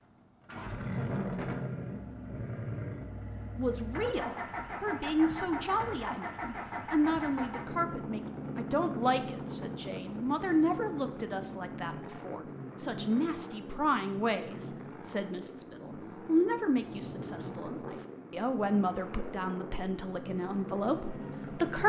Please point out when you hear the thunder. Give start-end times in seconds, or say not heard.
16.6-18.1.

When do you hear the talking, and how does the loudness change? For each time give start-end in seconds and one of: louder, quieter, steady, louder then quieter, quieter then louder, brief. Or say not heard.
3.5-21.8 steady.